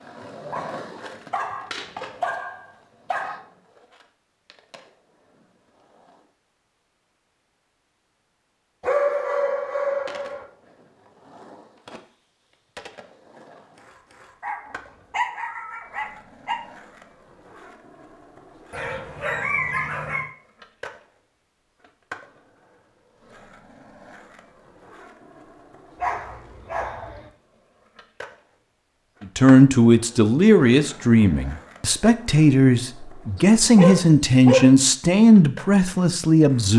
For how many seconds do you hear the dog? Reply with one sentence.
The dog can be heard for 11 seconds in total.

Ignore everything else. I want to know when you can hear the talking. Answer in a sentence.
The talking can be heard from 29.4 to 36.7 s.